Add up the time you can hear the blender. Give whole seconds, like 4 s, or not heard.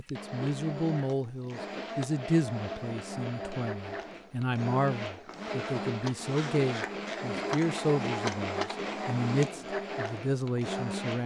11 s.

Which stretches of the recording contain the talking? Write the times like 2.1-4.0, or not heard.
0.0-11.2.